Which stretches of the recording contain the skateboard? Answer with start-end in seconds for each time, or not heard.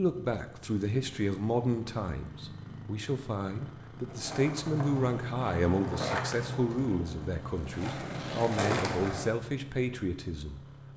4.0-9.3.